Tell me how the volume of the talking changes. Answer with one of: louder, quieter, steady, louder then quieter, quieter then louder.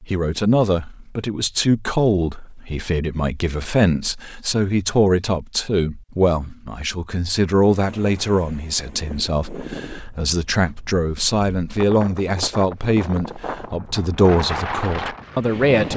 steady.